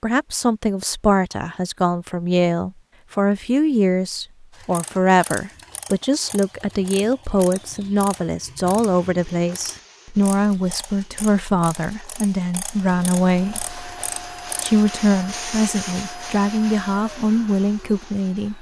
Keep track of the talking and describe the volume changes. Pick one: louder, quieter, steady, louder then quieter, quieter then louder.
steady.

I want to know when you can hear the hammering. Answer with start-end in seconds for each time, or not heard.
not heard.